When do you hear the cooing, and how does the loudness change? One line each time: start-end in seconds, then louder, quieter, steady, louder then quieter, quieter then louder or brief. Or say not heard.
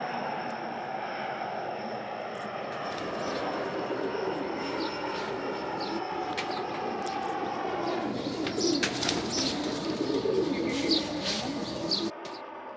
2.5-12.4 louder.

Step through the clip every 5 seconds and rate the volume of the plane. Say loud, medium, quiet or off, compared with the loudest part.
loud, loud, medium.